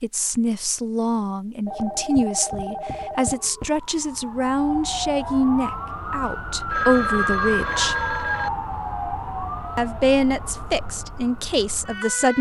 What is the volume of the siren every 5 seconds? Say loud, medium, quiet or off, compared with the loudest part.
medium, loud, medium.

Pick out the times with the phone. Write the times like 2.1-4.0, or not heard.
1.6-3.7, 6.7-8.5.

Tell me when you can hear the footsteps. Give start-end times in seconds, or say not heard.
not heard.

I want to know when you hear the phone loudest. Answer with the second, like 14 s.
7 s.